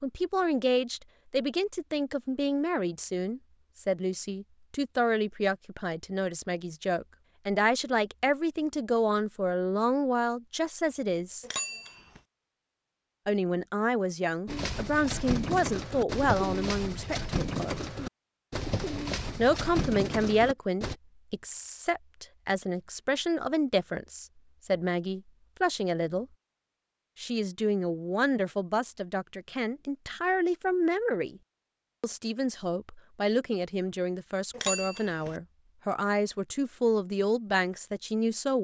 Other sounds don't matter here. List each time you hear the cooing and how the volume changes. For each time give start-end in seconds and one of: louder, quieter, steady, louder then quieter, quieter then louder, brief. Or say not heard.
14.4-20.9 steady.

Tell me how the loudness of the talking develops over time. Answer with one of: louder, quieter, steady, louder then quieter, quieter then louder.
steady.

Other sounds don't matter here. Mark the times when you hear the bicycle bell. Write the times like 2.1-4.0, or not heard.
11.4-12.2, 34.5-35.4.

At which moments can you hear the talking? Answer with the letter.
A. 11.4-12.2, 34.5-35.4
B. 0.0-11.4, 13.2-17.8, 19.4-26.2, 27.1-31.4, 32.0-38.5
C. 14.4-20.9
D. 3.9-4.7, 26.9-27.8
B.